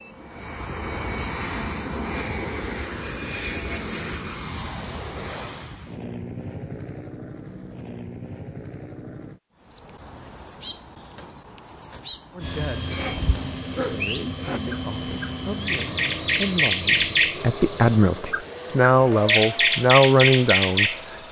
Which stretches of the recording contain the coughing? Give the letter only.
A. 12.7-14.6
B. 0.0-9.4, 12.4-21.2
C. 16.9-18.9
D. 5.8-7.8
A.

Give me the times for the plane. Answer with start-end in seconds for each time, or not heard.
0.0-9.4, 12.4-21.2.